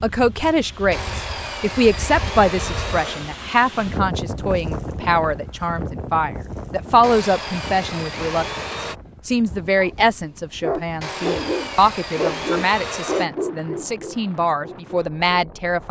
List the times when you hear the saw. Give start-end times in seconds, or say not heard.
0.9-3.3, 7.0-8.9, 11.0-13.3.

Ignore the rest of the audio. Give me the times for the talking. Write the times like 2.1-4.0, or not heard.
0.0-15.8.